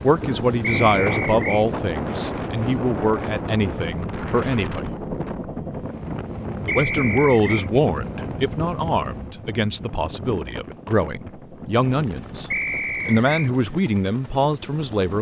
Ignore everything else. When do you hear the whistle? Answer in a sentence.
You can hear the whistle from 0.6 to 1.6 s, from 6.7 to 7.7 s and from 12.5 to 13.5 s.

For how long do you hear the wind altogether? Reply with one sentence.
You can hear the wind for 15 seconds altogether.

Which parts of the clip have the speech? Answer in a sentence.
The speech can be heard from 0.0 to 5.0 s and from 6.7 to 15.1 s.